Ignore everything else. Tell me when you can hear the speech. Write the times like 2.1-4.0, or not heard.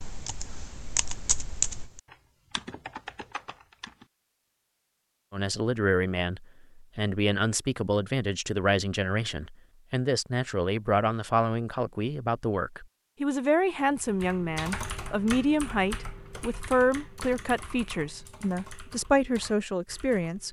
5.3-20.4.